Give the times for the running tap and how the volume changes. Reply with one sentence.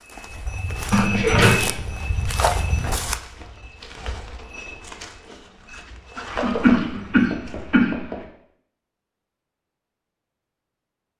You can't hear the running tap here.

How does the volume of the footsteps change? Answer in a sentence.
The volume of the footsteps goes down, then up.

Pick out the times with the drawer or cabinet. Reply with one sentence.
The drawer or cabinet can't be heard in this clip.